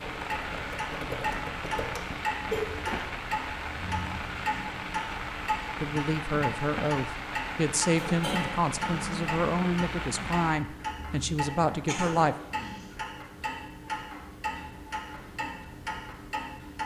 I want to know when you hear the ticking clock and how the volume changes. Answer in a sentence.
You can hear the ticking clock from 0.0 to 16.8 s, at a steady volume.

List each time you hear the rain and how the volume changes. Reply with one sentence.
You can hear the rain from 0.0 to 10.6 s, at a steady volume.